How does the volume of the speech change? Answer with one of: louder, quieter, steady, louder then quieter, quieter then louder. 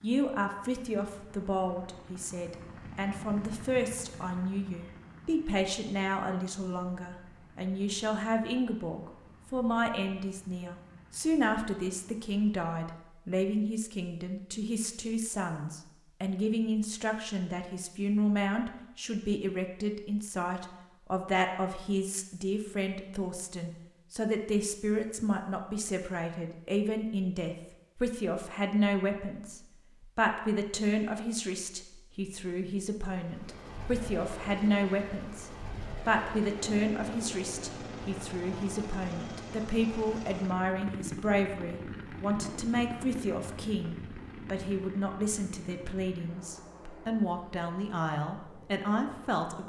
steady.